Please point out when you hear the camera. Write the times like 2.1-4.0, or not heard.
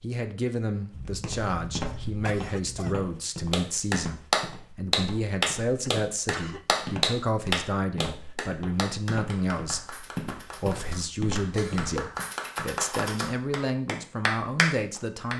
not heard.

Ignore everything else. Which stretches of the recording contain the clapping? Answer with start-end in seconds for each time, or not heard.
3.5-15.3.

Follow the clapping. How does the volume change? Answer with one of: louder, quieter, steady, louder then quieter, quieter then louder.
quieter then louder.